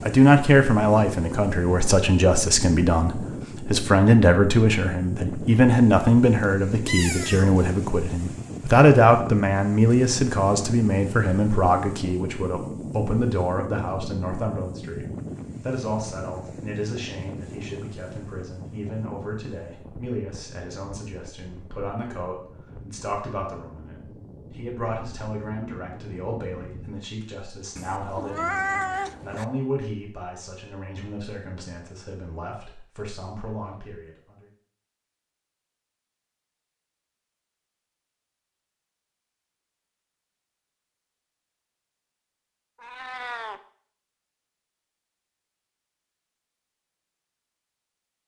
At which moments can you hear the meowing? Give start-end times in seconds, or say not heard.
6.3-7.7, 27.8-29.4, 42.8-43.6.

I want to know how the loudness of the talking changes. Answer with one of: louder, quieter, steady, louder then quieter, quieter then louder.
quieter.